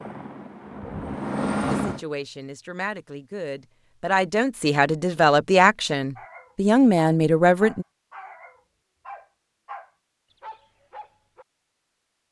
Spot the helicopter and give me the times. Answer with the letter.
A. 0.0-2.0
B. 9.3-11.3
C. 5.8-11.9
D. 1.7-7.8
A.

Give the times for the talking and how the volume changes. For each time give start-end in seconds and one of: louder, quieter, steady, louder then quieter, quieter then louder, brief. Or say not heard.
1.7-7.8 louder.